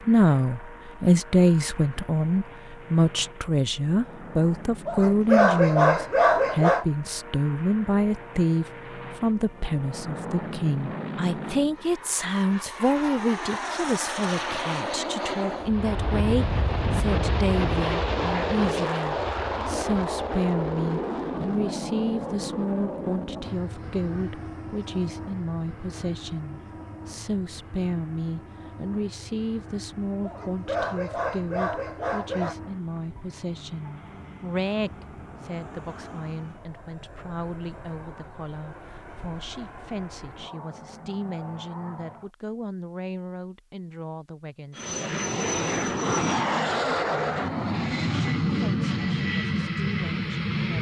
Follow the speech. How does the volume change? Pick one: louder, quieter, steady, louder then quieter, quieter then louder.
quieter.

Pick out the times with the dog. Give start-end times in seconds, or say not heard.
4.8-6.8, 30.2-32.5.